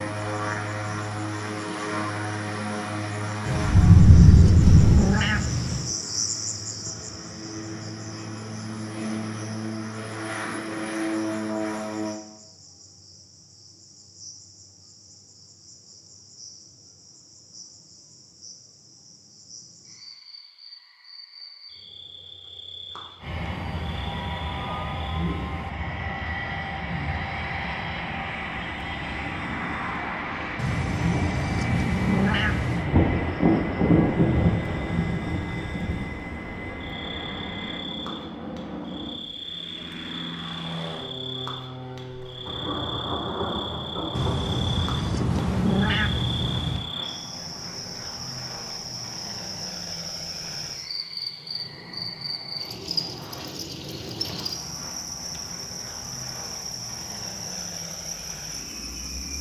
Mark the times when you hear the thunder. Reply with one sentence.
You can hear the thunder from 3.6 to 5.0 s, from 32.9 to 36.0 s and from 42.5 to 46.5 s.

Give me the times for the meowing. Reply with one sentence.
The meowing can be heard from 3.5 to 6.0 s, from 30.6 to 32.9 s and from 44.1 to 46.9 s.